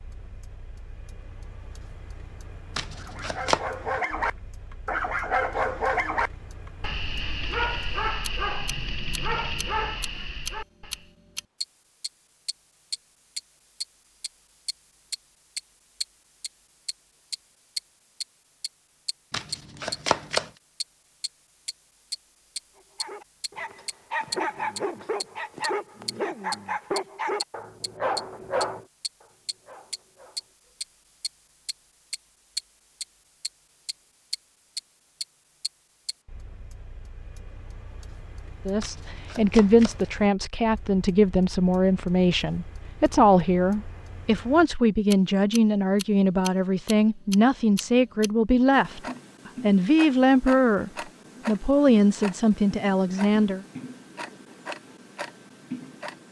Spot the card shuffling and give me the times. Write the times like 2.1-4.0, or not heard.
2.8-3.6, 19.3-20.5, 38.8-40.1.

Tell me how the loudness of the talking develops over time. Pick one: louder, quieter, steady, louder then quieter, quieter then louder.
steady.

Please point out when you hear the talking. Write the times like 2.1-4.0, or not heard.
38.6-53.6.